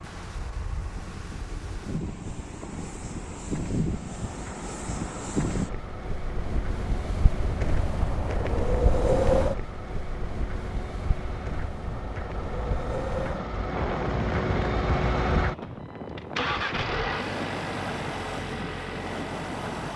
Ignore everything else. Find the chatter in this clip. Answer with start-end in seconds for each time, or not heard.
not heard.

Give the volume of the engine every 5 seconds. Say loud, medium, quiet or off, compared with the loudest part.
medium, medium, loud, loud.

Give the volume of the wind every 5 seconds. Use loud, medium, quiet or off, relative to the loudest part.
medium, loud, medium, medium.